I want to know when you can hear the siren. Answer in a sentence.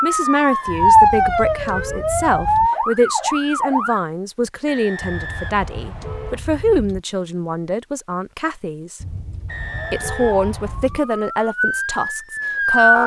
You can hear the siren from 0.0 to 4.0 s and from 9.7 to 13.0 s.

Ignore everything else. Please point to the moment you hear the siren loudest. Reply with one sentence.
The loudest moment of the siren is at 1 second.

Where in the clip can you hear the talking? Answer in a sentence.
The talking can be heard from 0.0 to 9.0 s and from 9.9 to 13.0 s.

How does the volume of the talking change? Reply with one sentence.
The loudness of the talking stays about the same.